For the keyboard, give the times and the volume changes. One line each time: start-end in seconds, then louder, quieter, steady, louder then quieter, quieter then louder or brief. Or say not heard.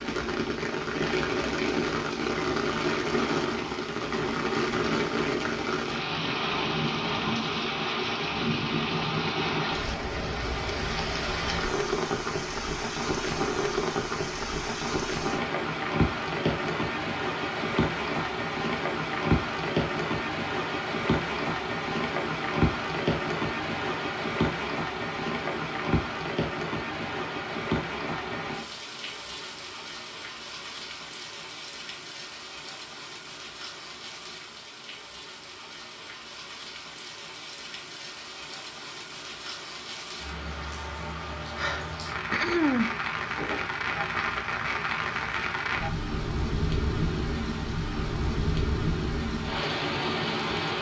not heard.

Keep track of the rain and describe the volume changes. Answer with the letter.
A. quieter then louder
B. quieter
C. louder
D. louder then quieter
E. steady
A.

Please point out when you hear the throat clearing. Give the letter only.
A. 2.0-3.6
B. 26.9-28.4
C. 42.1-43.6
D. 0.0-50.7
C.